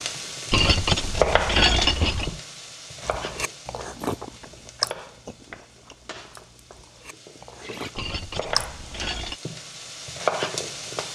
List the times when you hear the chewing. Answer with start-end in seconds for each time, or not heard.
3.0-9.0.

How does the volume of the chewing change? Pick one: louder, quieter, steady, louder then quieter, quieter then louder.
quieter then louder.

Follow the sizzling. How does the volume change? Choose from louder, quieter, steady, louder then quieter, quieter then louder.
quieter then louder.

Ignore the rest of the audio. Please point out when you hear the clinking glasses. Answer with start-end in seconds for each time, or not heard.
0.5-2.4, 8.0-9.4.